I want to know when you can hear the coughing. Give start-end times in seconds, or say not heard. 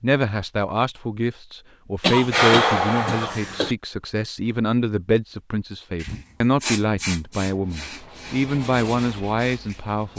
2.0-3.8.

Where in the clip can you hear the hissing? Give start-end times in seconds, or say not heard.
6.0-10.1.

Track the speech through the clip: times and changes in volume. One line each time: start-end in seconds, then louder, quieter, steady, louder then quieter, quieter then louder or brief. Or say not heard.
0.0-10.1 steady.